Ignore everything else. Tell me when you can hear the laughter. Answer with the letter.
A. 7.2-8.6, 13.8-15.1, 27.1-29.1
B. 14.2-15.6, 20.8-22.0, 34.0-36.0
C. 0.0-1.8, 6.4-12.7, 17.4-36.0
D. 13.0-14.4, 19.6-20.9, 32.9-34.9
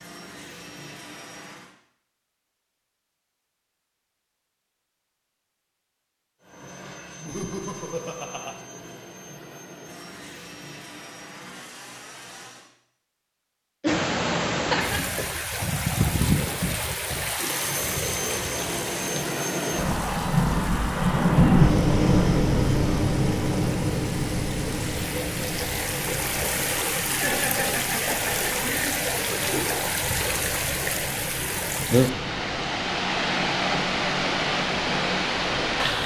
A.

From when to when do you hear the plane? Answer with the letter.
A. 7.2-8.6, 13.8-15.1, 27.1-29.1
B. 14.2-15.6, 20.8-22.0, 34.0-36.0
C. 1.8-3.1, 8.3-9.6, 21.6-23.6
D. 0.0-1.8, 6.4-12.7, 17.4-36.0
D.